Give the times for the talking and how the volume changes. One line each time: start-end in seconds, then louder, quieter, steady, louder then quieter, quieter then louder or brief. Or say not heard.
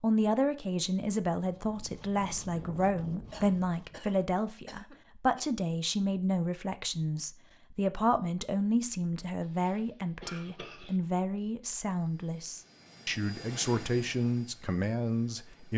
0.0-15.7 steady.